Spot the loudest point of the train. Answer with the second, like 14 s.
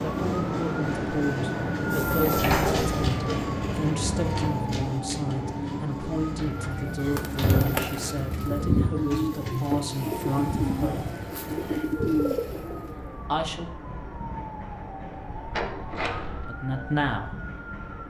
3 s.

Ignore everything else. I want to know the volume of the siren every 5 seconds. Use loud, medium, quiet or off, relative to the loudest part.
loud, medium, medium, medium.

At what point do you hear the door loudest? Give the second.
3 s.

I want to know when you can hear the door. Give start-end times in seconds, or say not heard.
2.1-3.0, 6.3-7.8, 15.5-16.5.